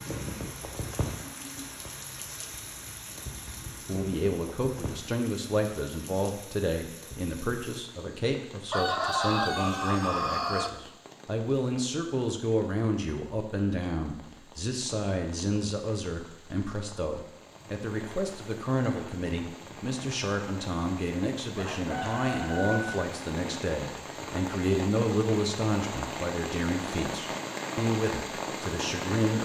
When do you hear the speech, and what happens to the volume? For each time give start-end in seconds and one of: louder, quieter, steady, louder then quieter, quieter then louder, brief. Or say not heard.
3.9-29.3 steady.